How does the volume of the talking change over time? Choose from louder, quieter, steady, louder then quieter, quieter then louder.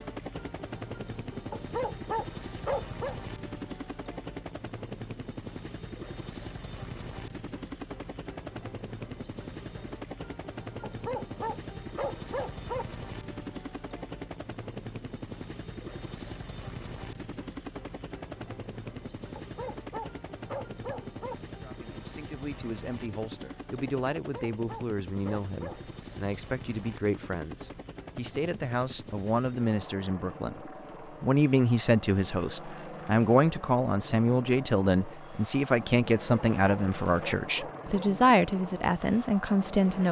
louder.